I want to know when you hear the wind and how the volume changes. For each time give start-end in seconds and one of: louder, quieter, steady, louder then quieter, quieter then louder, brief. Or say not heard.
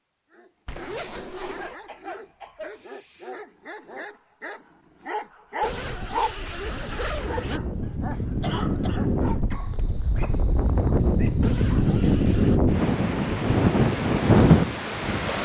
5.7-15.4 louder.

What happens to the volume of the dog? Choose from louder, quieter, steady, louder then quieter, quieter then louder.
louder then quieter.